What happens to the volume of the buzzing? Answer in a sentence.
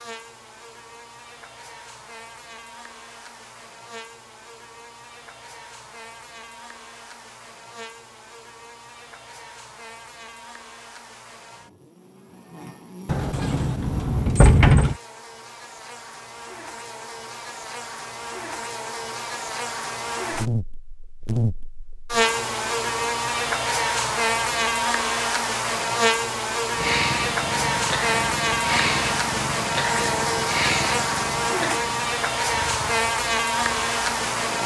The volume of the buzzing goes up.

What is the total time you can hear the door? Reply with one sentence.
You can hear the door for 2 seconds altogether.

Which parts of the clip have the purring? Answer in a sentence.
You can hear the purring from 26.8 to 34.6 s.